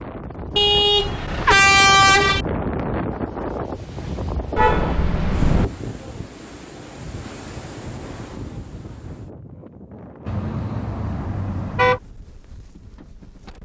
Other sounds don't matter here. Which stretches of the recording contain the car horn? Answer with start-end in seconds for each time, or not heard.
0.6-2.5, 4.5-5.7, 10.2-12.0.